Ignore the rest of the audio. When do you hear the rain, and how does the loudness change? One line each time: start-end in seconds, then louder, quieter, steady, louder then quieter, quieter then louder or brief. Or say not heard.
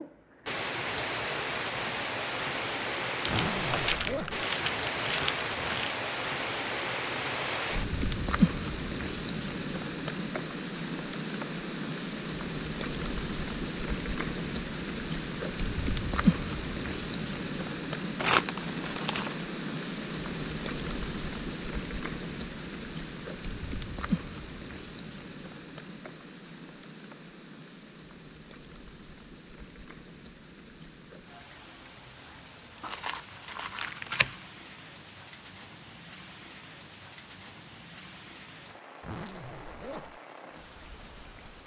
0.0-41.6 quieter.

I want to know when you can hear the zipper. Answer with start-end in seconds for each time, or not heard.
3.2-4.5, 39.0-40.2.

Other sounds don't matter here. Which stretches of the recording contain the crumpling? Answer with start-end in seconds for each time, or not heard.
3.2-6.0, 18.1-19.4, 32.8-34.4.